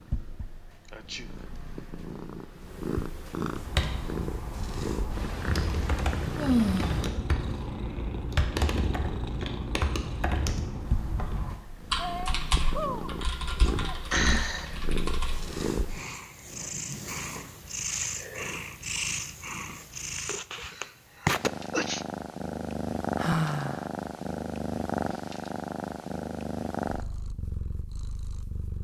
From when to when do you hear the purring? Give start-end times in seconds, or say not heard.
0.0-28.7.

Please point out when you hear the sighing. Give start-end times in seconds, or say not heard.
6.3-7.1, 13.7-14.8, 23.1-23.9.